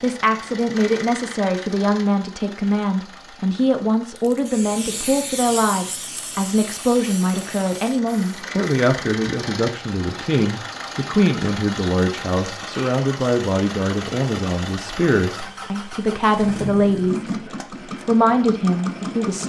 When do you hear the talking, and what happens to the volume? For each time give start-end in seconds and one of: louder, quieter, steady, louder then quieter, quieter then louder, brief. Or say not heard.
0.0-19.4 steady.